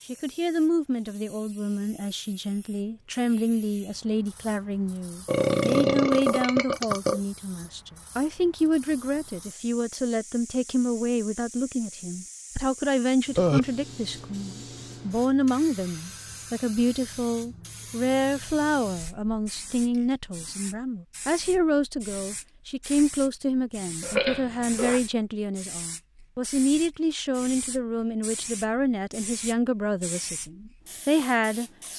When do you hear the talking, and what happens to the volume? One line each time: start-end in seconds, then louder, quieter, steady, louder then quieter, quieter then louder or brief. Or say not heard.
0.1-31.9 steady.